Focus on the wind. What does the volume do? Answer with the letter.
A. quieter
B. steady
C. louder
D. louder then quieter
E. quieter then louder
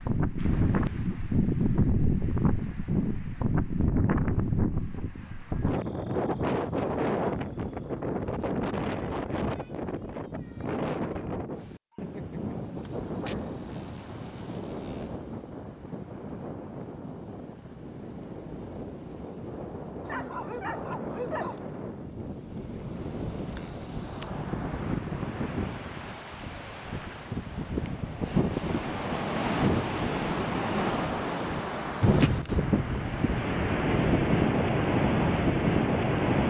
E.